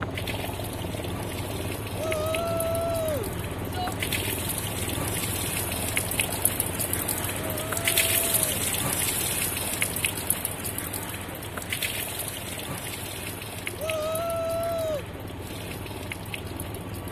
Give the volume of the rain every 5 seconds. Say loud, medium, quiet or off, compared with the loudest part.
medium, loud, medium, medium.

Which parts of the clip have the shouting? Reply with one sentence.
You can hear the shouting from 1.9 to 4.0 s, from 7.3 to 8.4 s and from 13.8 to 15.1 s.